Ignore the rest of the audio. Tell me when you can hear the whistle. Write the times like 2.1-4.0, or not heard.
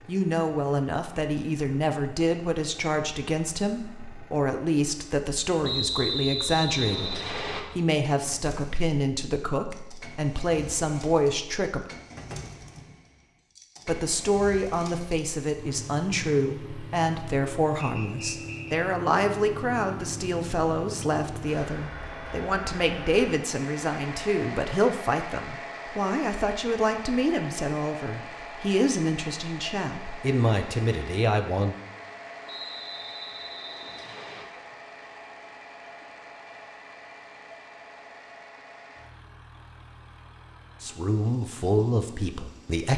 5.6-7.6, 17.8-18.6, 32.5-34.5.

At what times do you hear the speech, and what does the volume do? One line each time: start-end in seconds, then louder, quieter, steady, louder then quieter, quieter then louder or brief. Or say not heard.
0.1-11.8 steady
13.8-31.8 steady
40.8-42.9 brief.